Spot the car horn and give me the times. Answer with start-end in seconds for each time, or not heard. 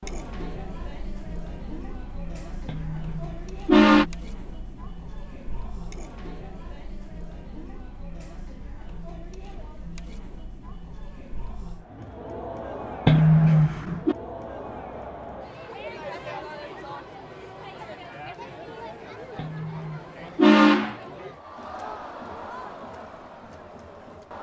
2.6-4.0, 13.1-14.2, 19.4-20.9.